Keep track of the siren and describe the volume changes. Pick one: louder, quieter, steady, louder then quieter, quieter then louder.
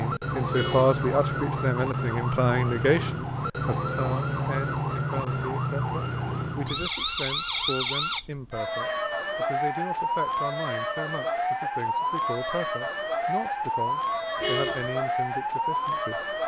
steady.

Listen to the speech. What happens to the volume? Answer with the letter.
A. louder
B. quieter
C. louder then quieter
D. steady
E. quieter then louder
B.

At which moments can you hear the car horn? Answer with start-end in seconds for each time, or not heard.
0.5-1.0, 14.4-14.9.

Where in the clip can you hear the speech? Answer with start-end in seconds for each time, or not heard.
0.0-16.4.